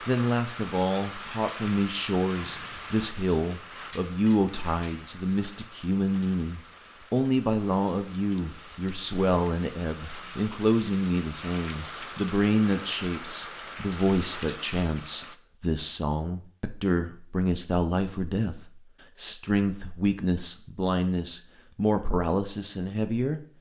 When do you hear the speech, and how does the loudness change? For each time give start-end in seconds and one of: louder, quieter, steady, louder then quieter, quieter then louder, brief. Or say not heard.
0.1-23.4 steady.